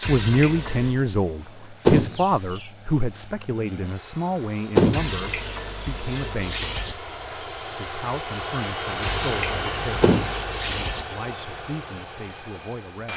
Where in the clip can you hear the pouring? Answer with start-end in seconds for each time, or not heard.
0.0-0.9, 4.9-7.0, 9.0-11.1.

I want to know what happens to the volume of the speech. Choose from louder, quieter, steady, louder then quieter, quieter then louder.
quieter.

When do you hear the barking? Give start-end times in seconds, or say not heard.
not heard.